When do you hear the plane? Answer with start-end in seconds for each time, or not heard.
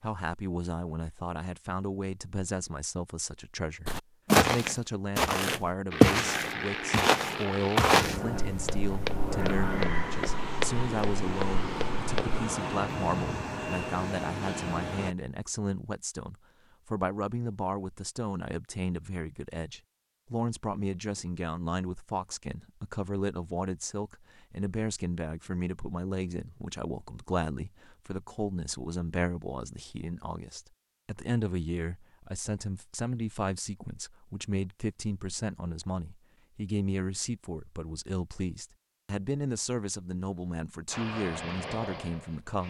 5.9-15.2, 40.9-42.6.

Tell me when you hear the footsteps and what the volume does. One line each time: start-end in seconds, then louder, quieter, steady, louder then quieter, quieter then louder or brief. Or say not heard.
3.9-12.4 quieter.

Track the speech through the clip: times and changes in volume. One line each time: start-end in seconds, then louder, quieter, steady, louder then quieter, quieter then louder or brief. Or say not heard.
0.0-42.6 steady.